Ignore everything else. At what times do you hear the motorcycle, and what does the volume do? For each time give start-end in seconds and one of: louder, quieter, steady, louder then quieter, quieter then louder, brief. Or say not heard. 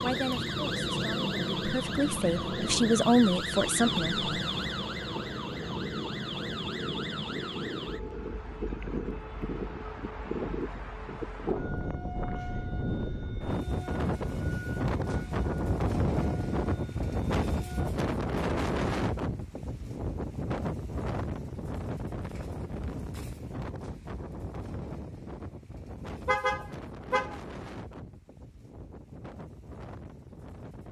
not heard.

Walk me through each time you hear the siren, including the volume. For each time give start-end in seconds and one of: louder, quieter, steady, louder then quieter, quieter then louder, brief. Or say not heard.
0.0-17.9 quieter.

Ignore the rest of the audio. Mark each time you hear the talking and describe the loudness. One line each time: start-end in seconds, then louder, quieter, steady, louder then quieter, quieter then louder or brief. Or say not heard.
0.0-4.2 louder.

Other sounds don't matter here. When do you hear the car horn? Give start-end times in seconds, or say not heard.
26.2-27.4.